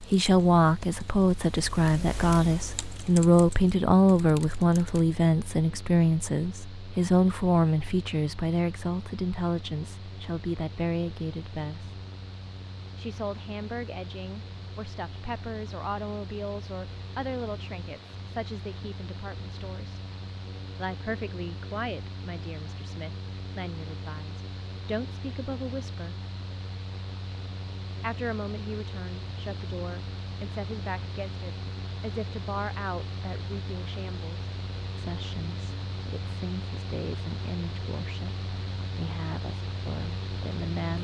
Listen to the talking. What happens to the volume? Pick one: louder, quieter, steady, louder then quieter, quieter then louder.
quieter.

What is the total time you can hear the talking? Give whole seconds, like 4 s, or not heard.
37 s.